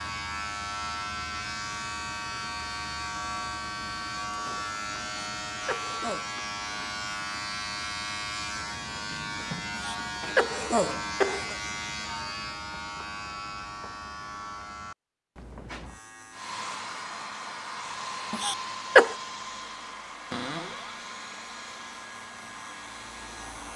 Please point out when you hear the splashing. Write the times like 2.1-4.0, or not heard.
not heard.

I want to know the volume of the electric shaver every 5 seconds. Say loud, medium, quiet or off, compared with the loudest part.
loud, loud, loud, quiet, quiet.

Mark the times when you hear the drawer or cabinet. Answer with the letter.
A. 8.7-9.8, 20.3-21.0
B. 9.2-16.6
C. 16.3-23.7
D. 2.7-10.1
A.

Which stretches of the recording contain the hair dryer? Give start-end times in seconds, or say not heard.
16.3-23.7.